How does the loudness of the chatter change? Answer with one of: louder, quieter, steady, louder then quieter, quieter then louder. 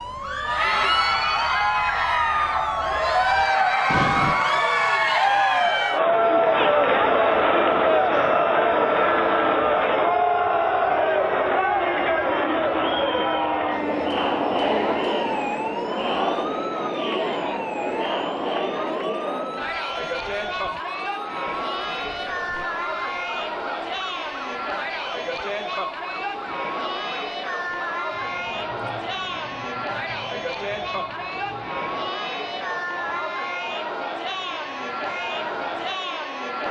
quieter.